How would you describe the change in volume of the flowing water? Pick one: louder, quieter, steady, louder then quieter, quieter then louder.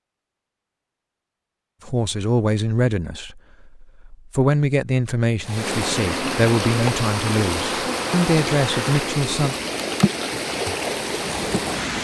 steady.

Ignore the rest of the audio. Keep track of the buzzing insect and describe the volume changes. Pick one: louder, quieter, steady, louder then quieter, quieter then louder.
quieter.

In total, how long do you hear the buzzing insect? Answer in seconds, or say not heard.
6 s.